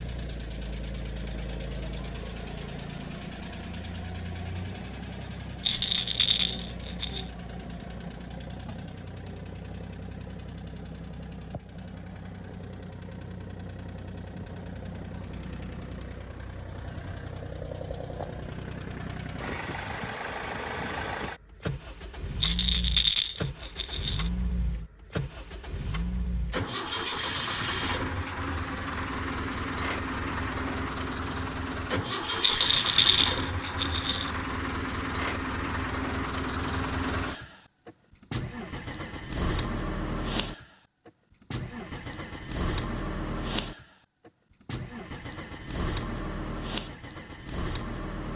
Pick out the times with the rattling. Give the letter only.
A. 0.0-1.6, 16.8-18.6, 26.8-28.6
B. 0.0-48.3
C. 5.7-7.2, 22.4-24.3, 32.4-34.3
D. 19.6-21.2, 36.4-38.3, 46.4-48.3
C.